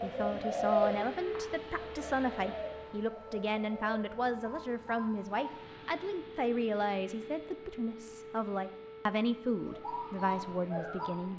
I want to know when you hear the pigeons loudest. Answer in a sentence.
The loudest moment of the pigeons is at 1 second.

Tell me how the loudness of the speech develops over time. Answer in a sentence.
The volume of the speech stays about the same.